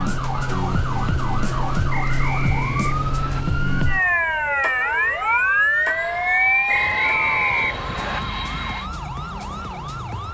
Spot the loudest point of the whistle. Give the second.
7 s.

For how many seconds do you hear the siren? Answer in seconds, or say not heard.
10 s.